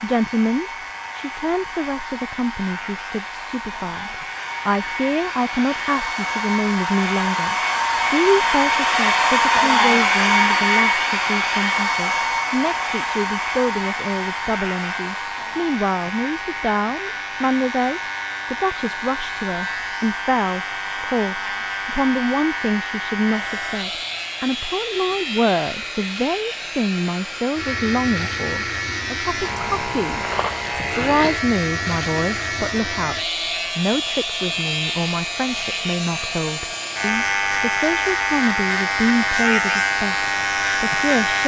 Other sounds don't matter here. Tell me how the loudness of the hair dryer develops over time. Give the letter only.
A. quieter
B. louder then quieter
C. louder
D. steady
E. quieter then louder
B.